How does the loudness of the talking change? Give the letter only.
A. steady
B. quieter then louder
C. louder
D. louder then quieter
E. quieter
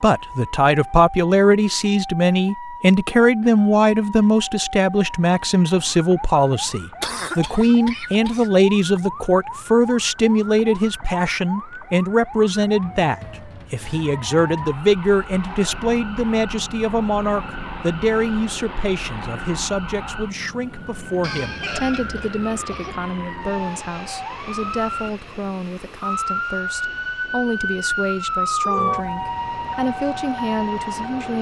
E.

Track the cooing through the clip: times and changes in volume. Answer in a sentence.
The cooing can't be heard in this clip.